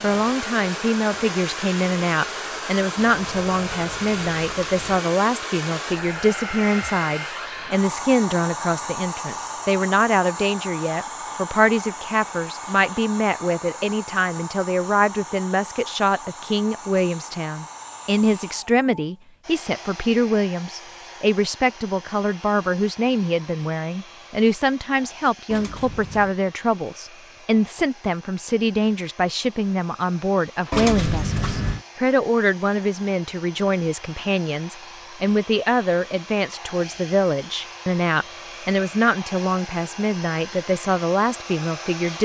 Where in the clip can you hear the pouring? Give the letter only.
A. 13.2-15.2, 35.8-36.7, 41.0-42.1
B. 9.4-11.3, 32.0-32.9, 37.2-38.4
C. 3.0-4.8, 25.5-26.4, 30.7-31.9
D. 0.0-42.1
C.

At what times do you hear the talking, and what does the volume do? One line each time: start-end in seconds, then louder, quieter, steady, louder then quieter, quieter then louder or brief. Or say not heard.
0.0-42.1 steady.